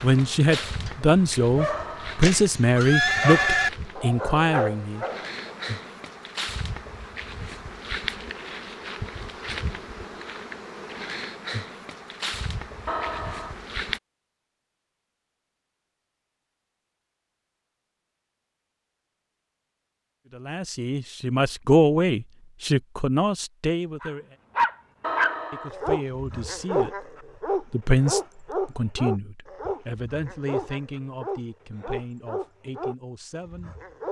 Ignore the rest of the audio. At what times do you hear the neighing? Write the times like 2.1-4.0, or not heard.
1.7-3.7, 12.8-13.6, 25.0-25.7.